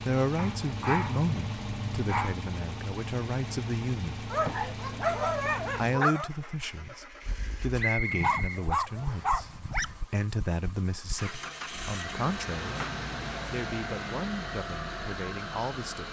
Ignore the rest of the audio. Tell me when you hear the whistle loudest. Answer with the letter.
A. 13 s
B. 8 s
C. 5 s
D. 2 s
B.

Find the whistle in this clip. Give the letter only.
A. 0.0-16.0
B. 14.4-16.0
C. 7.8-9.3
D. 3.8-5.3
C.